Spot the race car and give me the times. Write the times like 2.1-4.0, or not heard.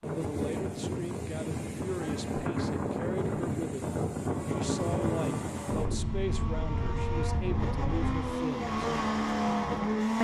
4.3-10.2.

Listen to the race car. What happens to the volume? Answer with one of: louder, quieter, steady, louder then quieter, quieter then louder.
louder.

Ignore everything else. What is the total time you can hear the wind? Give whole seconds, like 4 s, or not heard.
8 s.